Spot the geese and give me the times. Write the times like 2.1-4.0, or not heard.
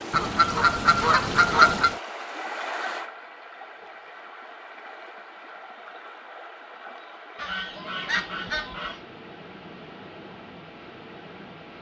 0.1-1.9, 7.3-9.0.